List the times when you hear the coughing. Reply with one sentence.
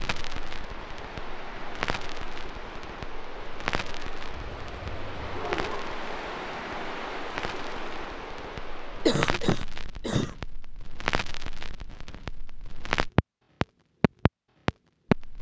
The coughing can be heard from 9.1 to 10.3 s.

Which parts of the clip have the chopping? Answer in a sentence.
The chopping can't be heard in this clip.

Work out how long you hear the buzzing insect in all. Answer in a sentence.
You can't hear the buzzing insect here.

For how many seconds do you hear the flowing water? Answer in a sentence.
The flowing water can be heard for 9 seconds in total.